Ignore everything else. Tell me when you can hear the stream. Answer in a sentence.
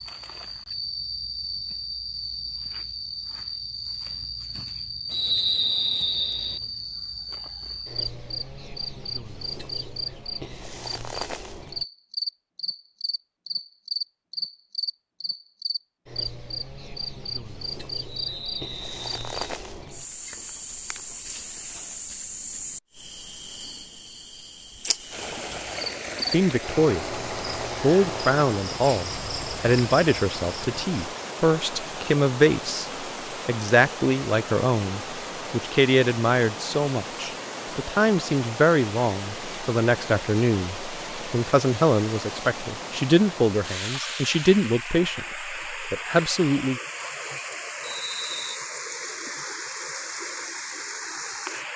The stream can be heard from 25.1 to 51.7 s.